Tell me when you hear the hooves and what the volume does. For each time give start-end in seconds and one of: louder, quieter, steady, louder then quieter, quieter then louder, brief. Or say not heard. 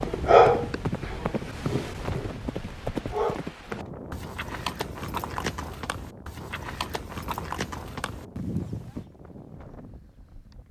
0.0-10.6 steady.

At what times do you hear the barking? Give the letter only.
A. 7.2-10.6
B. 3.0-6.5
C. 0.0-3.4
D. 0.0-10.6
C.